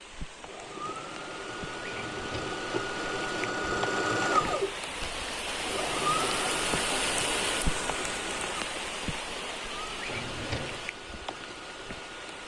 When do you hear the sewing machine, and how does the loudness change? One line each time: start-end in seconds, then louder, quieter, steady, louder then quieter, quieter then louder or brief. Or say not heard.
0.3-12.4 louder then quieter.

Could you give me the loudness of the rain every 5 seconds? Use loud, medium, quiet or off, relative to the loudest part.
medium, loud, medium.